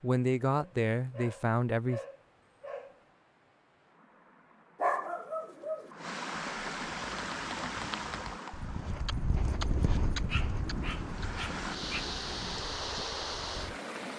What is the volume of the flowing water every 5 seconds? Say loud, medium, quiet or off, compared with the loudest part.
quiet, loud, loud.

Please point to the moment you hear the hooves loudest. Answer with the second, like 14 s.
10 s.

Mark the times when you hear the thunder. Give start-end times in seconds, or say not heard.
9.3-12.6.